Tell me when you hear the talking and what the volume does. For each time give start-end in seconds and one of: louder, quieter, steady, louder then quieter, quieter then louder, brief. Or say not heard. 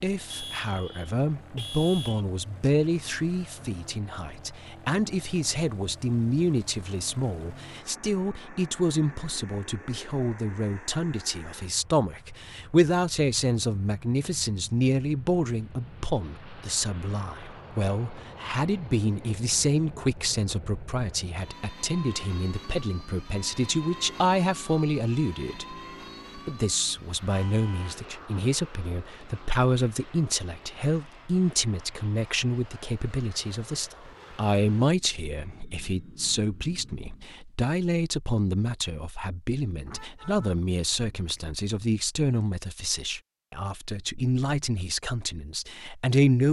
0.0-25.8 steady
26.4-46.4 steady.